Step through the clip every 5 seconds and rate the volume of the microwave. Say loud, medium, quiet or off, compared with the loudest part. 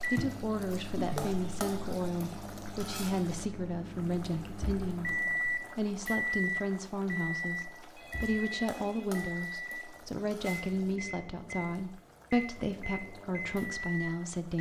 medium, loud, medium.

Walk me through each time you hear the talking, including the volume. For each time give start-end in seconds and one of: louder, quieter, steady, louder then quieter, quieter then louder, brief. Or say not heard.
0.1-14.5 steady.